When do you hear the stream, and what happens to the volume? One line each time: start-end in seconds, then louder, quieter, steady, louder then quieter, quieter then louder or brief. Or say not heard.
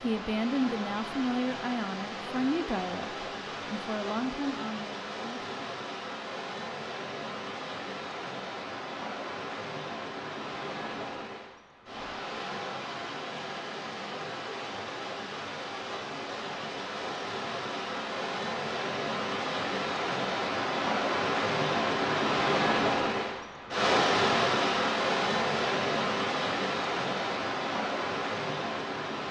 0.0-29.2 louder.